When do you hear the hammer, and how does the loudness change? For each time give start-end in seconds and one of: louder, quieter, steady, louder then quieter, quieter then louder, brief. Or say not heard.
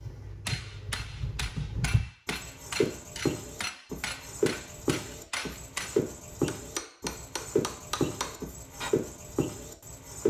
0.5-8.9 steady.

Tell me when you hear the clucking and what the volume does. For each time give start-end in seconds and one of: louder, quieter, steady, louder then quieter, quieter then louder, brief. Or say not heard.
not heard.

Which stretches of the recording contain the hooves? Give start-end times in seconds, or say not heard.
0.0-10.2.